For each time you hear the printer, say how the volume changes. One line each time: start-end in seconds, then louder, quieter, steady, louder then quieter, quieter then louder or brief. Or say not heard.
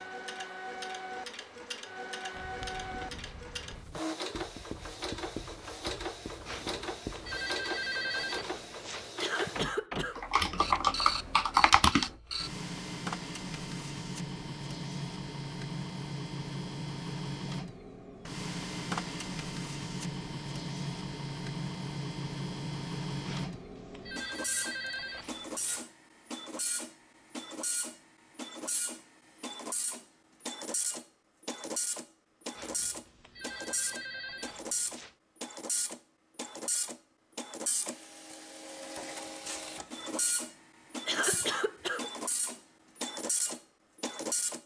0.0-44.6 steady.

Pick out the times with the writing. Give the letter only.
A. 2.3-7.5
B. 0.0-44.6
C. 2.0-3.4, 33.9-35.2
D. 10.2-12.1
A.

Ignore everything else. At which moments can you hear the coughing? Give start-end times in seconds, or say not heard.
9.2-10.5, 41.0-42.4.